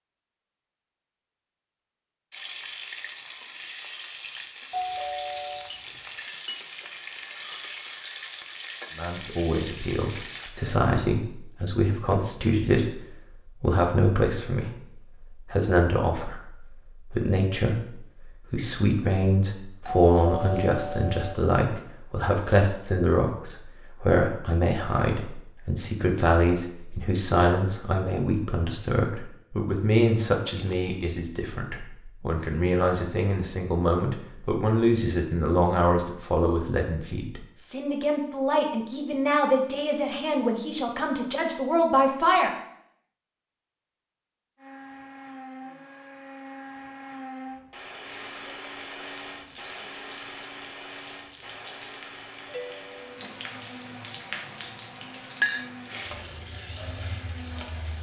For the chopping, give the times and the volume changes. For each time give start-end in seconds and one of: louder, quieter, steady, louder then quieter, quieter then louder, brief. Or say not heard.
not heard.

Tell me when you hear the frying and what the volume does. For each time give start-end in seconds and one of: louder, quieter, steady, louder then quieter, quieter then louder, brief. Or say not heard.
2.3-10.5 steady
48.0-57.9 louder.